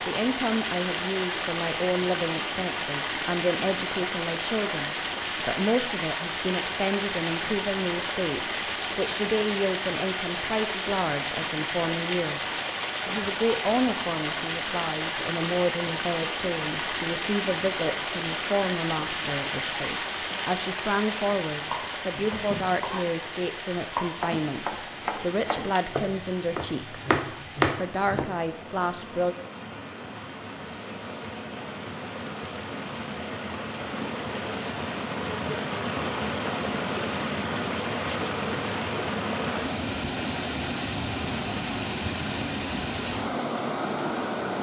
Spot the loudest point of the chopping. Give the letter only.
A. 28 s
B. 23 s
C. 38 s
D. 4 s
A.